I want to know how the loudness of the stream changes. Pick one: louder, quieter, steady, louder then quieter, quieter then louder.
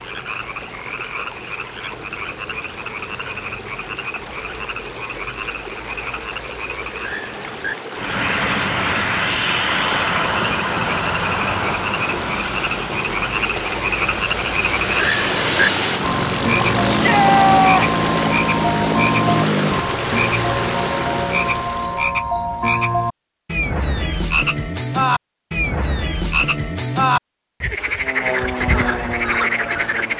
louder.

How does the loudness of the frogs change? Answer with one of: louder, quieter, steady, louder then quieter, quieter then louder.
louder.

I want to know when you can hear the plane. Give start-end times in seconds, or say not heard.
8.0-19.9, 27.9-30.1.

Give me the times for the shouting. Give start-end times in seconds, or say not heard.
16.9-17.9.